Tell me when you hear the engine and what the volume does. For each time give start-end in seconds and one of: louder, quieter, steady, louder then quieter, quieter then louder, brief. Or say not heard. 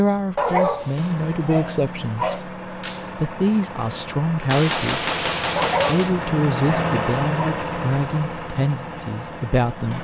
0.0-9.9 louder then quieter.